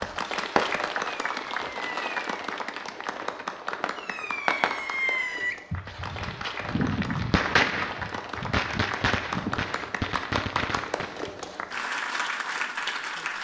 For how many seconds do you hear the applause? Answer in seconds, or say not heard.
13 s.